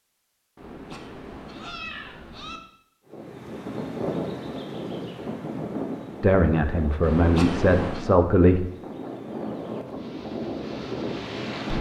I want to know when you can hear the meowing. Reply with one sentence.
You can hear the meowing from 0.6 to 2.6 s and from 7.0 to 8.1 s.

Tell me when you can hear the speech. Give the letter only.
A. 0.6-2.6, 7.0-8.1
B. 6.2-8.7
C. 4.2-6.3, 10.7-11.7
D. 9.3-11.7
B.